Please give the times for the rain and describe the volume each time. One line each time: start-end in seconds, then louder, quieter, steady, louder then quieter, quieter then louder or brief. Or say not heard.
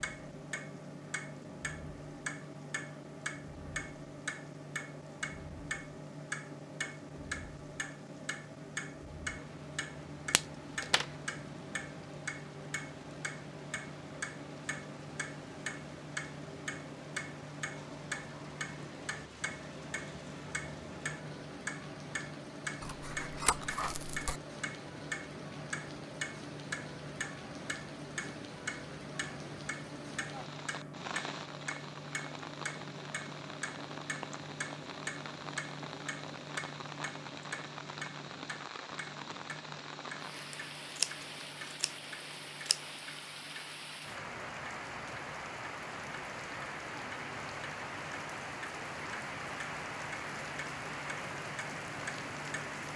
0.0-52.9 louder.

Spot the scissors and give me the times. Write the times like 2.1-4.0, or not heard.
10.3-11.1, 22.8-24.4, 40.3-42.8.